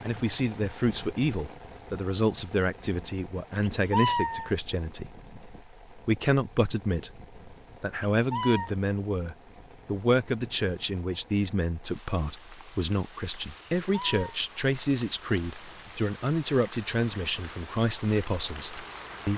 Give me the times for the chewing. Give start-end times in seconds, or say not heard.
not heard.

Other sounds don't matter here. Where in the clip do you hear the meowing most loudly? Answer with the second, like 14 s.
4 s.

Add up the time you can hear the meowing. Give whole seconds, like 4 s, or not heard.
2 s.